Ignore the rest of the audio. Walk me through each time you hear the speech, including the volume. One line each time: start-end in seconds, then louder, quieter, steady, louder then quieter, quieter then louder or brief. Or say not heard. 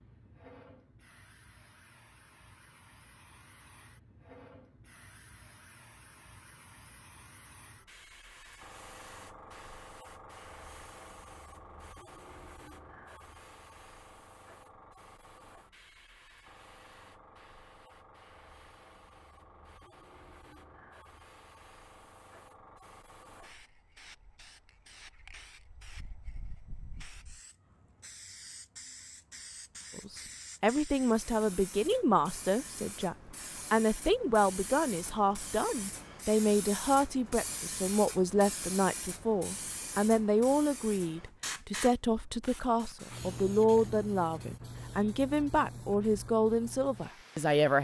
29.9-47.7 steady.